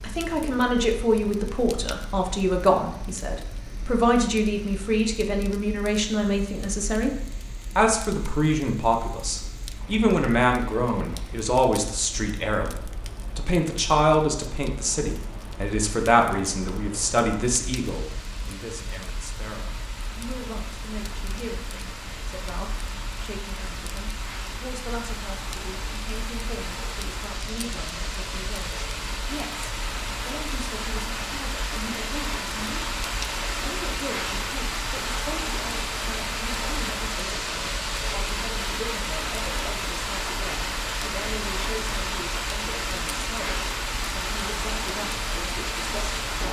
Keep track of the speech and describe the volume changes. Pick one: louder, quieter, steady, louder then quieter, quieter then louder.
quieter.